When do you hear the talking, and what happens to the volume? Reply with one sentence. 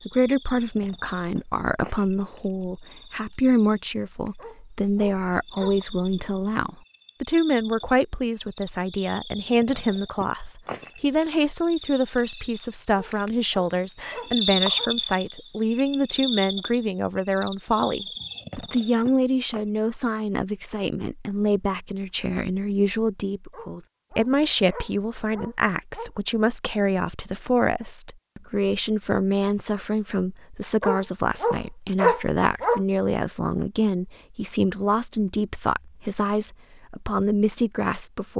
You can hear the talking from 0.1 to 38.3 s, at a steady volume.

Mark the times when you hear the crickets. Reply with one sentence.
You can hear the crickets from 0.0 to 19.7 s.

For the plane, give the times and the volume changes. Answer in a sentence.
The plane can't be heard in this clip.